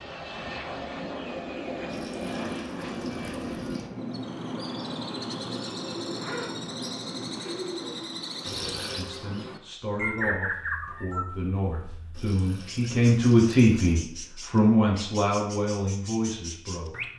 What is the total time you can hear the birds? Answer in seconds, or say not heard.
13 s.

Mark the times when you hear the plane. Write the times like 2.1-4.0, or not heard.
0.0-7.5.